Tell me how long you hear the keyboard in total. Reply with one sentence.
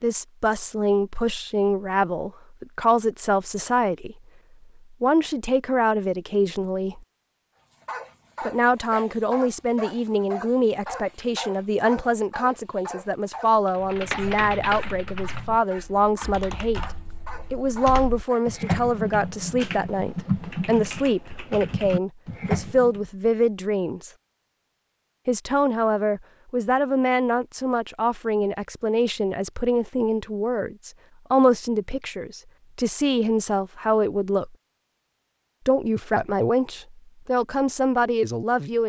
The keyboard can be heard for 9 seconds in total.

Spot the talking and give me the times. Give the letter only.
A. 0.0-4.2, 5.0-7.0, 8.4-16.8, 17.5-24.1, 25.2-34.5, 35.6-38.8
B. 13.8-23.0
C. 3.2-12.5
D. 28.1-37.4
A.